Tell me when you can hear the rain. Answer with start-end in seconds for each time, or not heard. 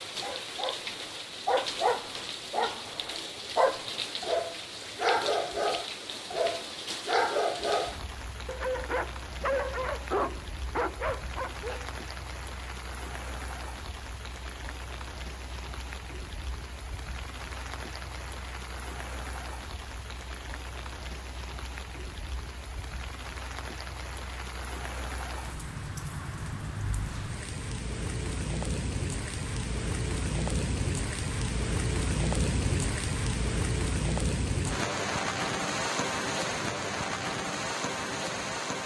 0.0-38.8.